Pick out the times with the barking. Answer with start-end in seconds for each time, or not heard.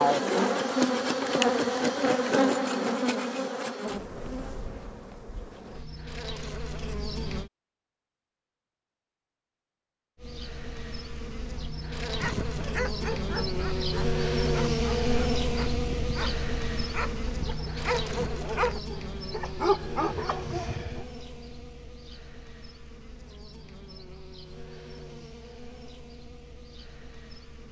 12.1-21.1.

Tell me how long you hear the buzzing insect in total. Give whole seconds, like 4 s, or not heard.
25 s.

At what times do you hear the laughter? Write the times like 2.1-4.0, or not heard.
not heard.